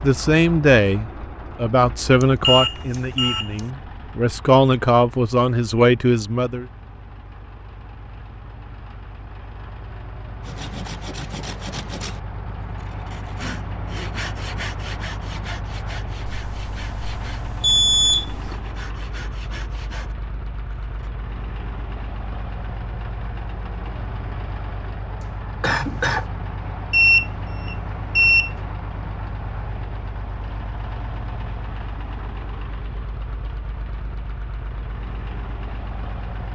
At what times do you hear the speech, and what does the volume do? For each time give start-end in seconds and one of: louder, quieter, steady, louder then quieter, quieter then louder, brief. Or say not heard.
0.0-6.7 quieter then louder.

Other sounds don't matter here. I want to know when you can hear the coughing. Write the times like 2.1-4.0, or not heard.
25.2-26.2.